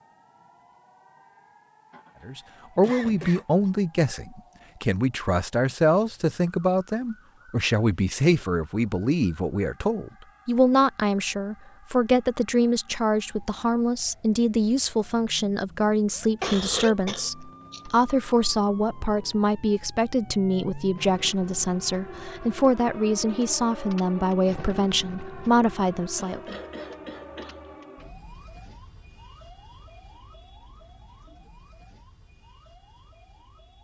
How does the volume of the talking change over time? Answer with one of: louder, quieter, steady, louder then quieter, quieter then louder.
steady.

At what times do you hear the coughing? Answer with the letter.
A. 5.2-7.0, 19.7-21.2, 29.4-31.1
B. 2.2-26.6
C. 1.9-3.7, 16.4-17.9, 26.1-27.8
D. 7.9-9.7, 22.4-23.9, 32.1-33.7
C.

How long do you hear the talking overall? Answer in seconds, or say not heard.
24 s.